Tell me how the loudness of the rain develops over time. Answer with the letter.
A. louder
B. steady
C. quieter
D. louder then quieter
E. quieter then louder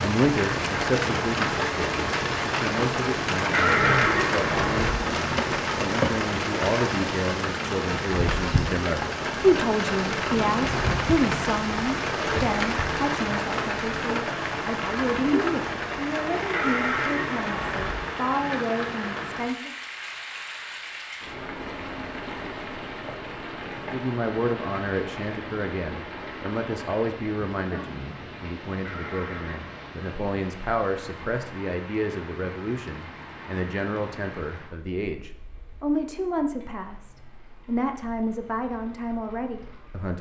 C.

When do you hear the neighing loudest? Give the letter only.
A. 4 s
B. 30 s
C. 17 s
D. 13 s
A.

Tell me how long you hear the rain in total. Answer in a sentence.
The rain can be heard for 40 seconds in total.